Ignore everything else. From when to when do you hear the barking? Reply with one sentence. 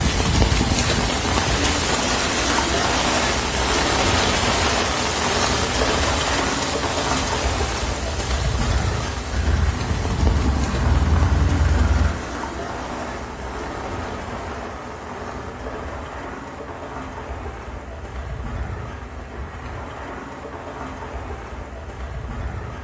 The barking can't be heard in this clip.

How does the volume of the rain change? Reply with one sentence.
The volume of the rain goes down.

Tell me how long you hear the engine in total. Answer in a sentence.
You can hear the engine for 3 seconds altogether.